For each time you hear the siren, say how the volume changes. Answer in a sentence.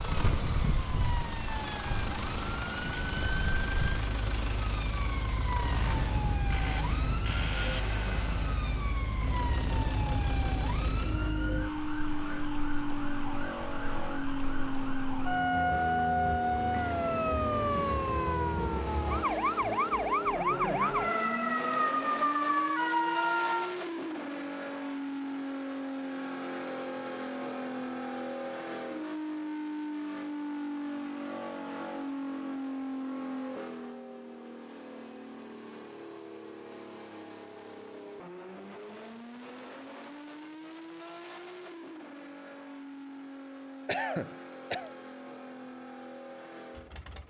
You can hear the siren from 0.0 to 23.8 s, getting louder.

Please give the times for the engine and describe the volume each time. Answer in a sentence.
You can hear the engine from 0.0 to 47.2 s, getting quieter.